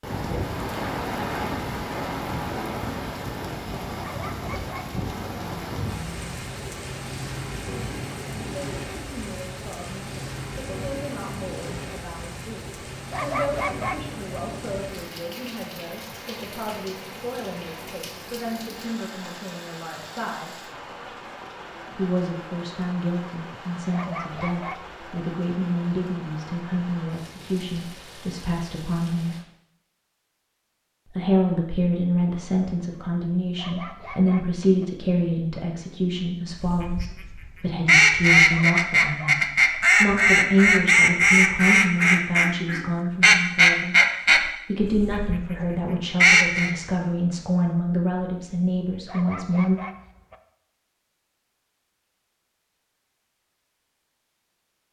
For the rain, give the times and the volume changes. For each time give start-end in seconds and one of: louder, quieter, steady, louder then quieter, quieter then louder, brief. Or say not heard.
0.0-29.4 quieter.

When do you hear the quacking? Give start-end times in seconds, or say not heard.
36.5-46.7.